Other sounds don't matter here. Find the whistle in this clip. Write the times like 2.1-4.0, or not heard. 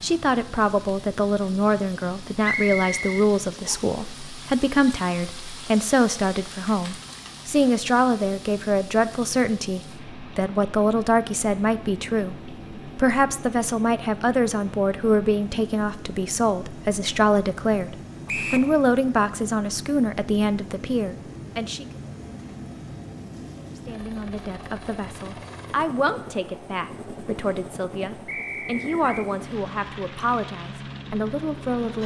2.4-3.8, 18.2-18.7, 28.2-29.3.